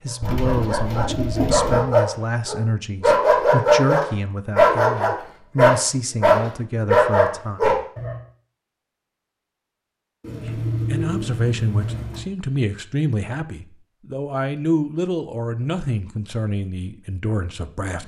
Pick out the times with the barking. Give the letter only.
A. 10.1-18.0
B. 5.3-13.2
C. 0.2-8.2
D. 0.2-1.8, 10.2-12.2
C.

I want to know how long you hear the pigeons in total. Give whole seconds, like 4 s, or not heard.
4 s.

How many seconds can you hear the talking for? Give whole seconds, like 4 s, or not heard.
15 s.